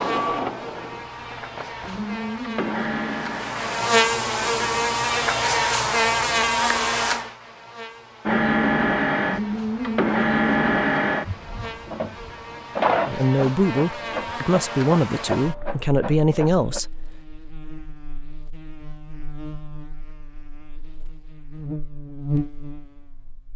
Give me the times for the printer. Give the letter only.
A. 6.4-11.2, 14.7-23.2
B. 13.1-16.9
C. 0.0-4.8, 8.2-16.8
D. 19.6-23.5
C.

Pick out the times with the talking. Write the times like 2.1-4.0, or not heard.
13.1-16.9.